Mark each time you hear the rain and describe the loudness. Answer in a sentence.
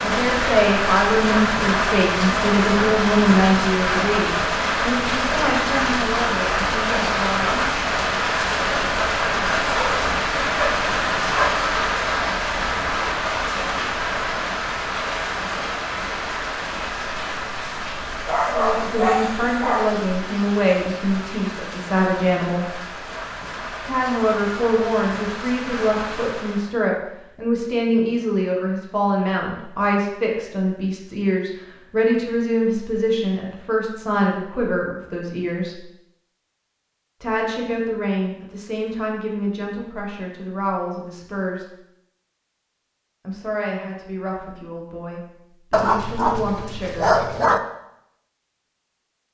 You can hear the rain from 0.0 to 26.7 s, getting quieter.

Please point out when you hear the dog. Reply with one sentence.
The dog can be heard from 9.7 to 11.7 s, from 18.2 to 19.9 s and from 45.7 to 47.6 s.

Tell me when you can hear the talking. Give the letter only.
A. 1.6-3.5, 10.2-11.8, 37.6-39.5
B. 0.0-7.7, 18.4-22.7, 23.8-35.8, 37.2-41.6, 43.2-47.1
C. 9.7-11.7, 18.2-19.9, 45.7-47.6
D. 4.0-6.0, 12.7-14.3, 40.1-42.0
B.